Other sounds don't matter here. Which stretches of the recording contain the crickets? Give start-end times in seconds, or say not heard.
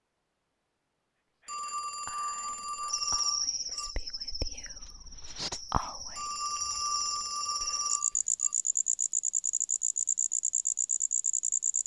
2.9-11.8.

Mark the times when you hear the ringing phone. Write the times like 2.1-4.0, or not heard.
1.4-4.0, 6.2-8.6.